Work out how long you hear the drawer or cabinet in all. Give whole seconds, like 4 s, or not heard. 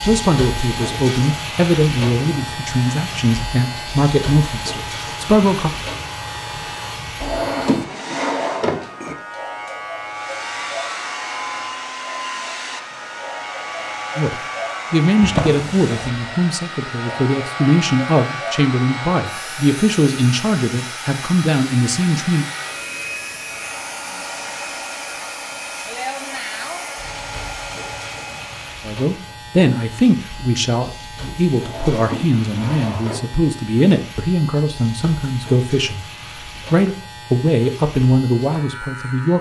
5 s.